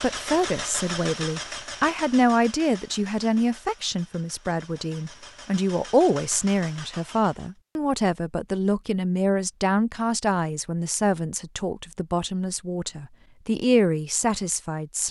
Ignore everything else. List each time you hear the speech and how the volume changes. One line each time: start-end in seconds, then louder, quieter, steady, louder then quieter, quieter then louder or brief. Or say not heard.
0.0-15.0 steady.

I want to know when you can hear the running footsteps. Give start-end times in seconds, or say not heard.
not heard.